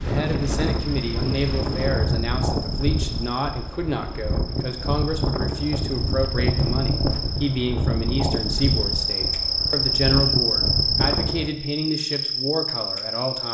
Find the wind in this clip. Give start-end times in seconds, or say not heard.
0.0-11.5.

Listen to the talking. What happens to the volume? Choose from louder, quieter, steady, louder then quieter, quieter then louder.
steady.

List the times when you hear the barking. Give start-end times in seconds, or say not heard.
not heard.